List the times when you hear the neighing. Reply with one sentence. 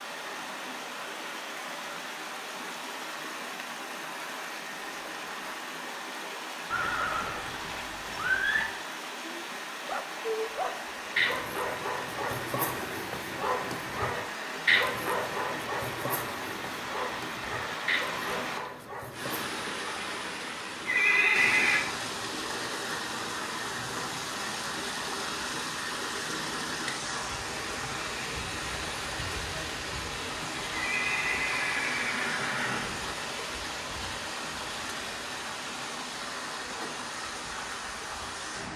You can hear the neighing from 6.7 to 8.7 s, from 20.9 to 21.9 s and from 30.7 to 33.2 s.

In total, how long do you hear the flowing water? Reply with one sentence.
You can hear the flowing water for 39 seconds altogether.